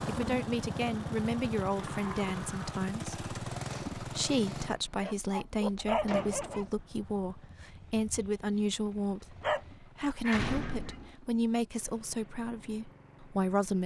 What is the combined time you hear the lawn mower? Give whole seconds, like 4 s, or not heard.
14 s.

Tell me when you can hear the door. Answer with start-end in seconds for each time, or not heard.
1.6-2.9, 5.6-6.7, 10.3-11.1.